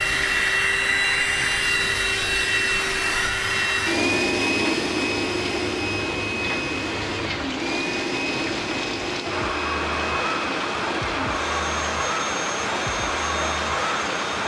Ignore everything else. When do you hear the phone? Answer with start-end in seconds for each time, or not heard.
not heard.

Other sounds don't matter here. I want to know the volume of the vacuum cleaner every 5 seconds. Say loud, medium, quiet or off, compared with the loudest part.
loud, medium, medium.